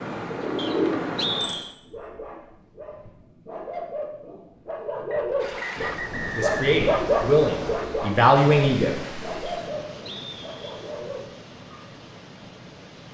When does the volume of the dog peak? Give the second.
7 s.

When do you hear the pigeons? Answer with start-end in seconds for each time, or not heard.
0.0-1.6.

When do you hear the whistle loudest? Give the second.
1 s.